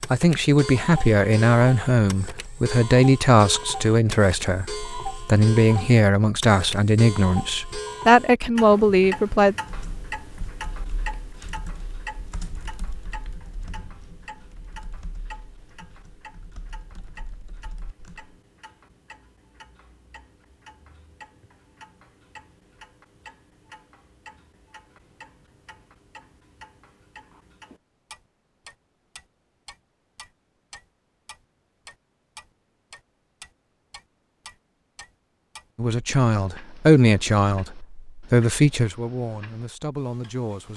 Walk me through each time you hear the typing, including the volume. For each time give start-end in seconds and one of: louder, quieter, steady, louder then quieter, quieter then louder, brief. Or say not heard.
9.7-18.4 quieter.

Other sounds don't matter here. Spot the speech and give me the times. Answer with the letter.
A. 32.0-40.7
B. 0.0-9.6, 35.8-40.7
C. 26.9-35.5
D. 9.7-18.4
B.